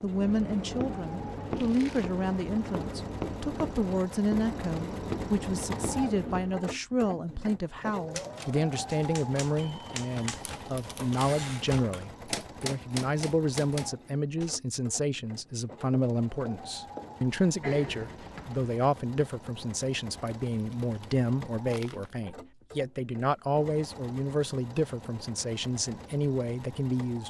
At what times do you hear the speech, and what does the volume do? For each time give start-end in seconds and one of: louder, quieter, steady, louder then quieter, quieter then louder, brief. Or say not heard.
0.0-27.2 steady.